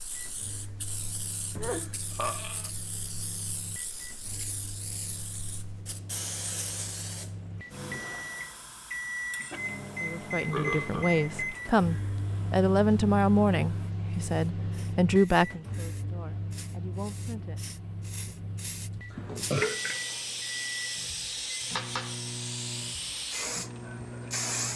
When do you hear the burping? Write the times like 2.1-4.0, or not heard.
1.6-2.7, 10.4-11.1, 19.1-20.0.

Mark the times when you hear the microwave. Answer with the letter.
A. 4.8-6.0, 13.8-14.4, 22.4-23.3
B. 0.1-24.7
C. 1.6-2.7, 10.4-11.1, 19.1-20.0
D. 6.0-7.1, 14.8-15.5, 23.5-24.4
B.